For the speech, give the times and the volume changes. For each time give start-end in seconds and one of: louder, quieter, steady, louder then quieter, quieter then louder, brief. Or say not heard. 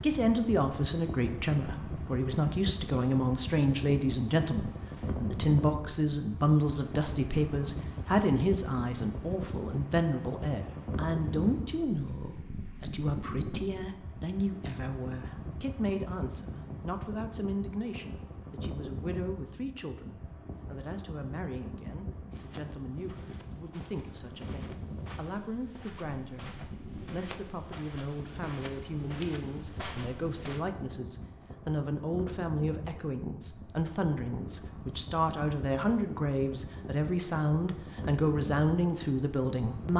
0.0-39.9 quieter then louder.